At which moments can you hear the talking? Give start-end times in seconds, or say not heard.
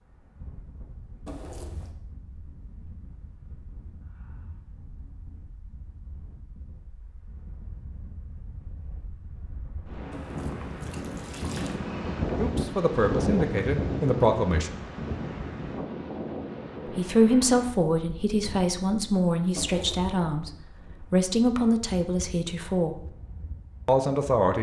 12.3-14.8, 16.9-23.1, 23.9-24.5.